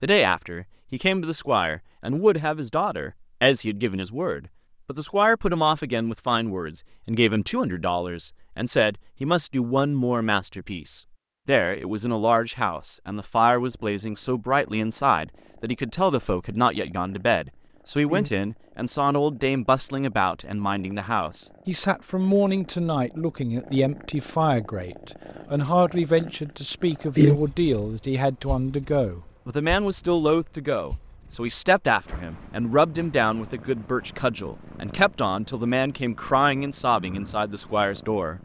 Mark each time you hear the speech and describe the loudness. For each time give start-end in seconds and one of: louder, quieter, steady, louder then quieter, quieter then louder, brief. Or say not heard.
0.0-38.4 steady.